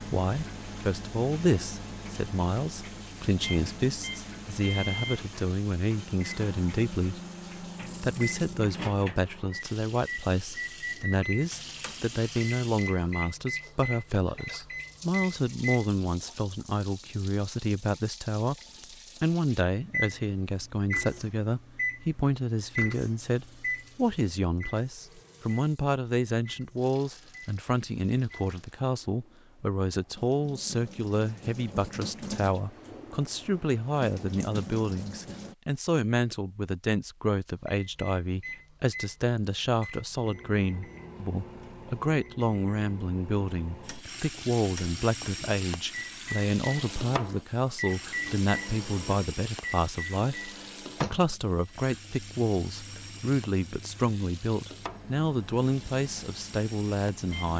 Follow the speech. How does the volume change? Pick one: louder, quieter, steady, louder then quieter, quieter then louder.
steady.